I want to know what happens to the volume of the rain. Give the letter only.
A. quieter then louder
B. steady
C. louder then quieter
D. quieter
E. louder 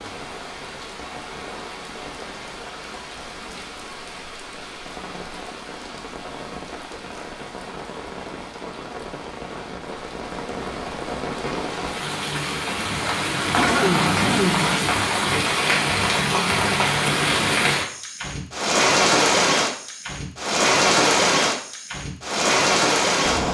E.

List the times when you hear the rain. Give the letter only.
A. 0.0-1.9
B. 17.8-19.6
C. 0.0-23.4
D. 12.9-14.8
C.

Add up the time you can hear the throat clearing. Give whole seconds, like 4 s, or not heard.
2 s.